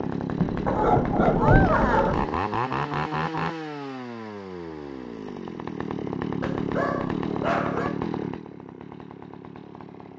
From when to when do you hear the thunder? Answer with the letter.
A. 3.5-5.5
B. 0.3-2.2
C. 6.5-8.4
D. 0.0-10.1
B.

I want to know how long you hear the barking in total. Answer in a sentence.
You can hear the barking for 3 seconds altogether.